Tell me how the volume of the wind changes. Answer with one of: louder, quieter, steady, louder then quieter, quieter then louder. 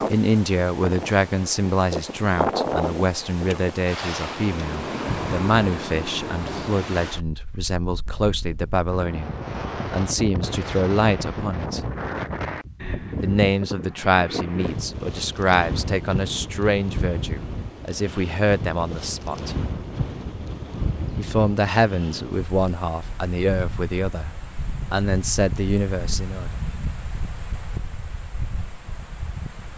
quieter.